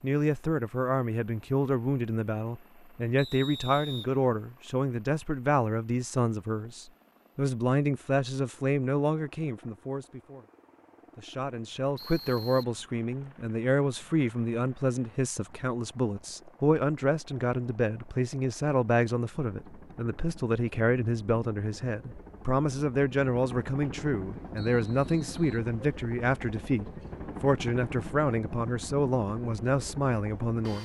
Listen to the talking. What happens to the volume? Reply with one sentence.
The loudness of the talking stays about the same.